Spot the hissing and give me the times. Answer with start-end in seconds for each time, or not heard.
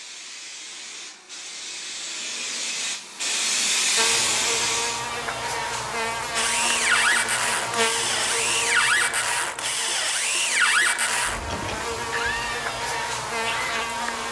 0.0-5.1.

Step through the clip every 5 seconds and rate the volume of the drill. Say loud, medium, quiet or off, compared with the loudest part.
off, loud, loud.